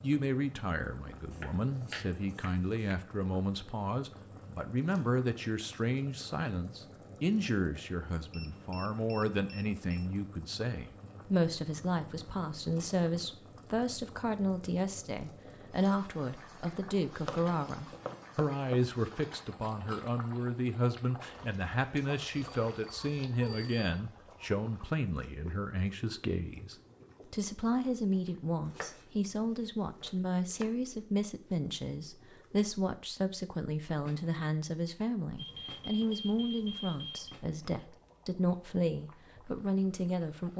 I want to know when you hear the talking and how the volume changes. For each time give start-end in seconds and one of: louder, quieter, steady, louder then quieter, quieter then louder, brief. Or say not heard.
0.0-40.5 steady.